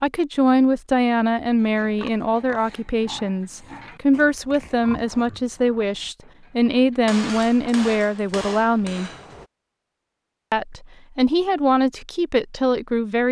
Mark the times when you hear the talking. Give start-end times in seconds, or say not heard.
0.0-9.1, 10.5-13.2.